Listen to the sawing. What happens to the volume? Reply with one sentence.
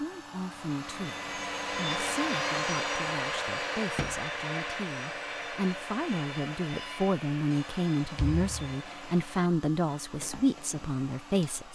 The loudness of the sawing goes down.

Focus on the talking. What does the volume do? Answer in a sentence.
The loudness of the talking goes up.